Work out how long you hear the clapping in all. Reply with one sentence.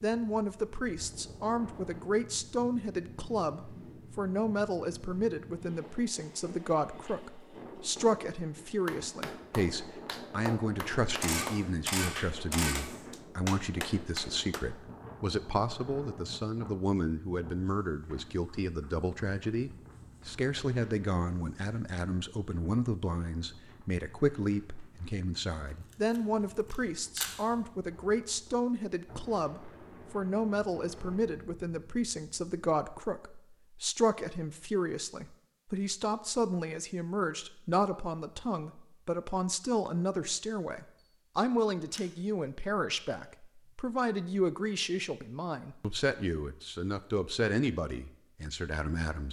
You can hear the clapping for 6 seconds altogether.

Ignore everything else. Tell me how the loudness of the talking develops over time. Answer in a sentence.
The loudness of the talking stays about the same.